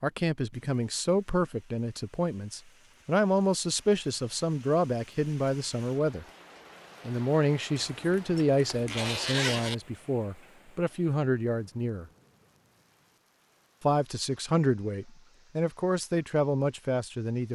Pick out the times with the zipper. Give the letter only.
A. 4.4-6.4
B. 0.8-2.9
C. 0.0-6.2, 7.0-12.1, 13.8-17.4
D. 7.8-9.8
D.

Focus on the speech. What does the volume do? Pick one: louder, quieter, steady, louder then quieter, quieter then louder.
steady.